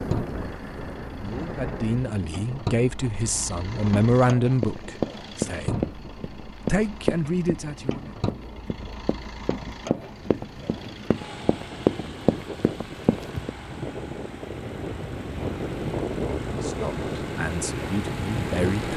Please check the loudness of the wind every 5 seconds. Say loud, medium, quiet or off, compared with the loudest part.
medium, quiet, medium, loud.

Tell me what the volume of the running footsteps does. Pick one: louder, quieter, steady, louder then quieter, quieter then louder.
quieter then louder.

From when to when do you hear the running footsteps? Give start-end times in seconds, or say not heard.
4.6-13.5.